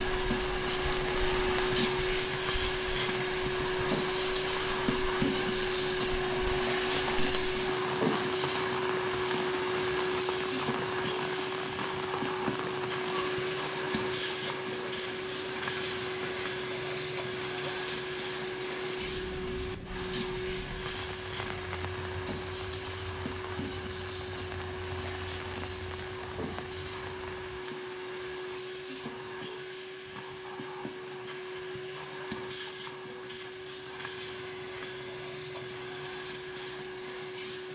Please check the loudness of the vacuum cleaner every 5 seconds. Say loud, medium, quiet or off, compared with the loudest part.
loud, loud, loud, medium, medium, medium, medium, medium.